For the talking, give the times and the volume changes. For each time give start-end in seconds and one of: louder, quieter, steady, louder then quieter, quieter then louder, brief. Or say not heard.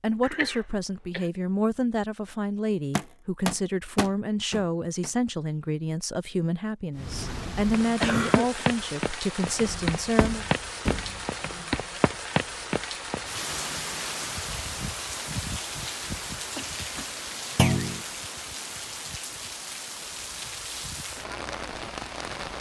0.0-10.4 steady.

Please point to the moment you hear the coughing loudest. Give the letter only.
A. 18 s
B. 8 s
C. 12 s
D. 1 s
B.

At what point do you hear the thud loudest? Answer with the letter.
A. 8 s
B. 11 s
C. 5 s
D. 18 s
D.